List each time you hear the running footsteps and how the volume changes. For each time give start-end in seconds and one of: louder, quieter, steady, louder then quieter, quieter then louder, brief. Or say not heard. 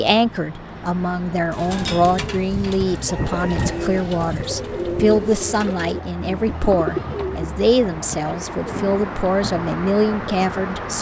not heard.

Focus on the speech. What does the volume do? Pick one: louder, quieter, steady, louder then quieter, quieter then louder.
steady.